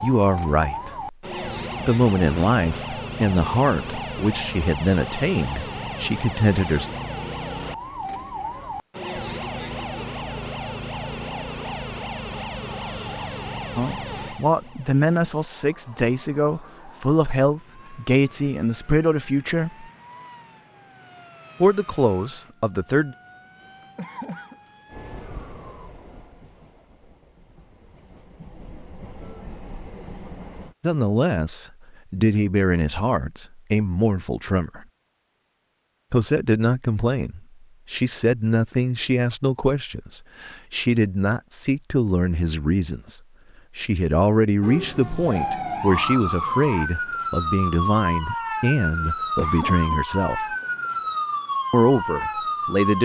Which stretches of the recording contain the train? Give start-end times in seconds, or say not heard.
24.9-30.8.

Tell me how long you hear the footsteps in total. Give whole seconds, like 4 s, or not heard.
not heard.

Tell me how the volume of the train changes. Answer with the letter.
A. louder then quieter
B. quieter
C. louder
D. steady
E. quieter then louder
E.